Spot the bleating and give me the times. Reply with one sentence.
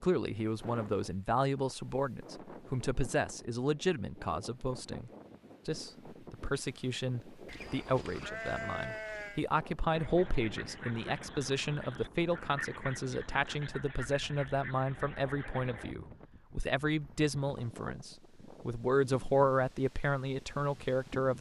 You can hear the bleating from 7.5 to 9.4 s.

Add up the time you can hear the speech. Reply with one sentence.
You can hear the speech for 21 seconds altogether.